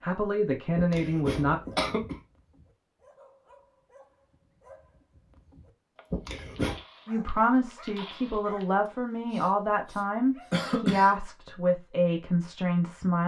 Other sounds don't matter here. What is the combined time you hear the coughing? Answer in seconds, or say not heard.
3 s.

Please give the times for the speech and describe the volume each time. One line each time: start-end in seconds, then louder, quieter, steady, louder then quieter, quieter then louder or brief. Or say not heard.
0.0-1.6 brief
7.0-13.2 steady.